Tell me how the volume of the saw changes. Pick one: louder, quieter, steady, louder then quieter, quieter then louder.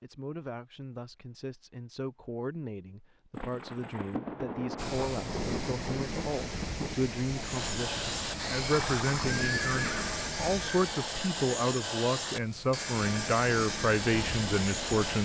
steady.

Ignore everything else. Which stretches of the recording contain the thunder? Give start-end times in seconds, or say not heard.
3.3-7.1.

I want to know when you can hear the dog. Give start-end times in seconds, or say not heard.
not heard.